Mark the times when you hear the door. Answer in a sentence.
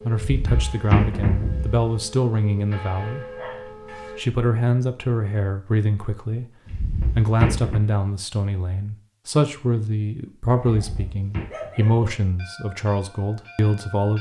The door can be heard from 0.1 to 1.9 s, from 6.7 to 7.8 s and from 10.7 to 11.4 s.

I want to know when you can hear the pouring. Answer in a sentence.
You can't hear the pouring here.